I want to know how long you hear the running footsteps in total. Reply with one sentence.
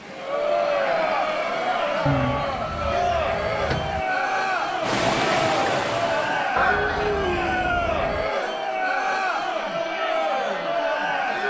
The running footsteps can't be heard in this clip.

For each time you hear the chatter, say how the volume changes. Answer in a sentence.
The chatter can be heard from 0.0 to 11.4 s, at a steady volume.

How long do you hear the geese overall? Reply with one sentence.
You can hear the geese for 4 seconds altogether.